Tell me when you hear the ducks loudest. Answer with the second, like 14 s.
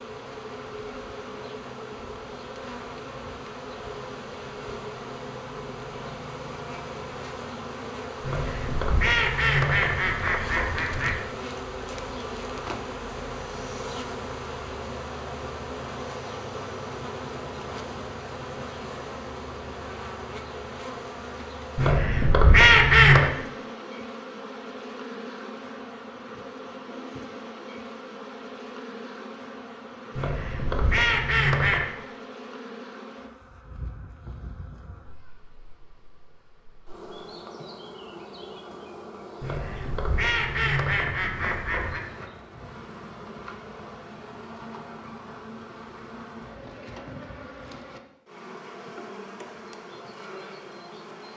23 s.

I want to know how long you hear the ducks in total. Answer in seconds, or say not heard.
9 s.